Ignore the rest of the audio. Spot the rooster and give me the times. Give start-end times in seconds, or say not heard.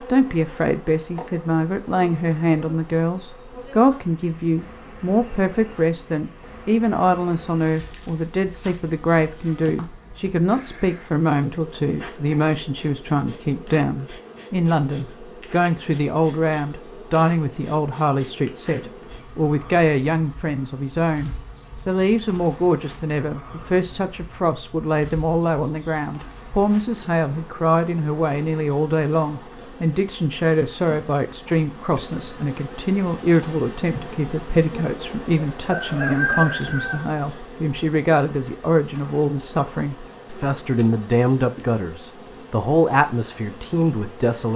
35.4-37.0.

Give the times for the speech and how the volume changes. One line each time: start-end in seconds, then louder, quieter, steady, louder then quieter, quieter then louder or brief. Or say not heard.
0.1-44.5 steady.